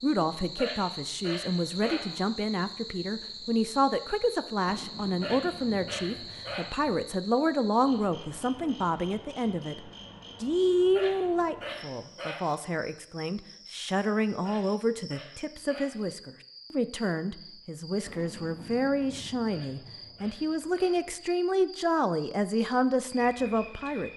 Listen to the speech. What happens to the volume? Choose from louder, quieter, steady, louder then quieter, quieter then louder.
steady.